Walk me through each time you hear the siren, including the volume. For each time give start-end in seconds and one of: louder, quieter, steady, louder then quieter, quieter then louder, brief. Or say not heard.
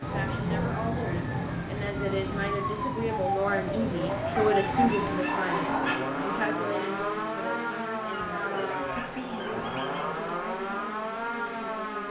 0.0-12.0 steady.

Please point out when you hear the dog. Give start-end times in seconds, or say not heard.
0.0-1.6, 4.0-6.0, 8.1-10.2.